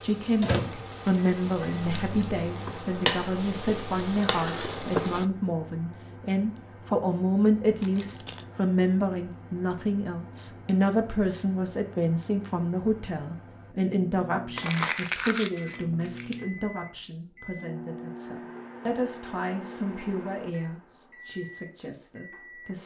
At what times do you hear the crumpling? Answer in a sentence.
The crumpling can be heard from 7.8 to 8.4 s and from 14.6 to 16.4 s.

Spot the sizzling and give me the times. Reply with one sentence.
The sizzling can be heard from 0.0 to 5.2 s.